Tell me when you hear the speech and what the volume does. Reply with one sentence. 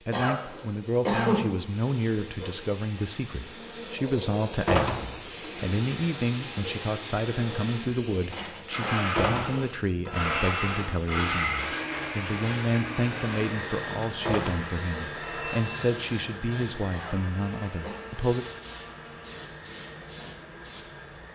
The speech can be heard from 0.1 to 18.4 s, at a steady volume.